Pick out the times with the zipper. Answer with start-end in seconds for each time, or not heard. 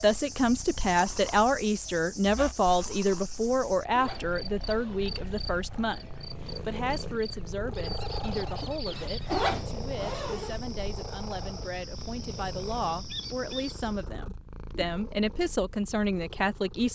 3.5-5.3, 8.8-10.6.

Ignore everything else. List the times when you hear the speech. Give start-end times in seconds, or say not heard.
0.0-16.9.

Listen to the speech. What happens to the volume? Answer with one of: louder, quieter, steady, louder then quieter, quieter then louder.
quieter then louder.